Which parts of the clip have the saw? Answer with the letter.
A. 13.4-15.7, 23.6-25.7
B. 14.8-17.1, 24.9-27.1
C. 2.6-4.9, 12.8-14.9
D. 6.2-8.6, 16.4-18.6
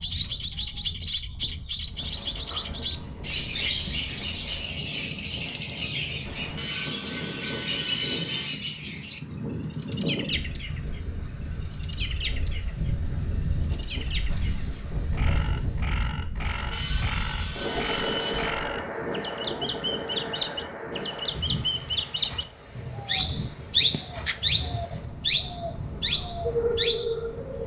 D.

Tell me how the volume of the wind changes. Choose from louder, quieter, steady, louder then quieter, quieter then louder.
louder then quieter.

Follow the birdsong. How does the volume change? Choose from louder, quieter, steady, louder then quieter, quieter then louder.
quieter then louder.